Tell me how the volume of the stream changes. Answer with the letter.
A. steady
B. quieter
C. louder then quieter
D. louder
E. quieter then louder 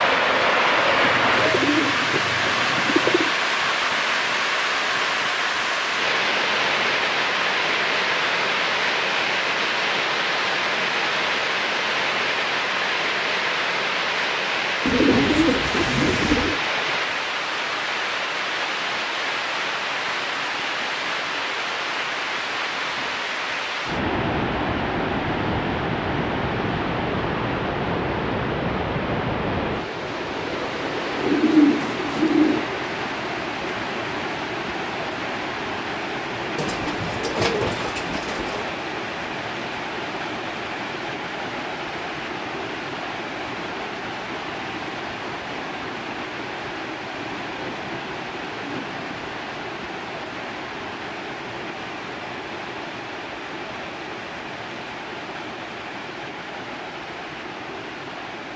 B.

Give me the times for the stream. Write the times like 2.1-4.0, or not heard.
0.0-58.5.